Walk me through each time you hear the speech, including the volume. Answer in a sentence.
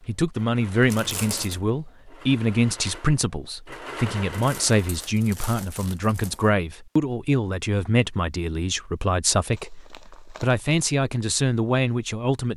The speech can be heard from 0.1 to 12.5 s, at a steady volume.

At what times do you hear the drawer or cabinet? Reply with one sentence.
You can't hear the drawer or cabinet here.